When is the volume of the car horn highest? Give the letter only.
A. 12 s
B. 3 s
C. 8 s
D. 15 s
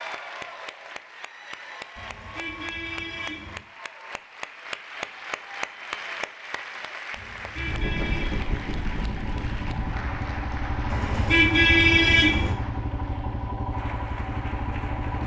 A.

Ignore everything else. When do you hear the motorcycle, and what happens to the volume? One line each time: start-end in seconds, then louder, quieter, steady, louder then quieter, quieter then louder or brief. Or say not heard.
7.5-15.2 steady.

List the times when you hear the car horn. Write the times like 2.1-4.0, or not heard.
1.9-3.6, 7.2-8.4, 10.9-12.6.